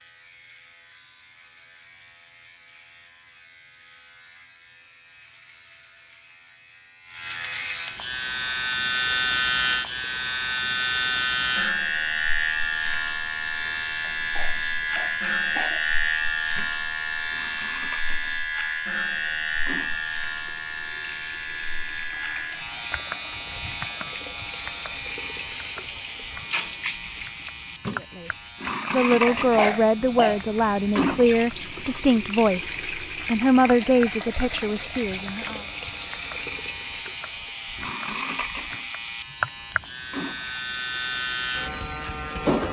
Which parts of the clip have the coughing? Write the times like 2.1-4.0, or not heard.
14.0-15.8, 29.2-30.4.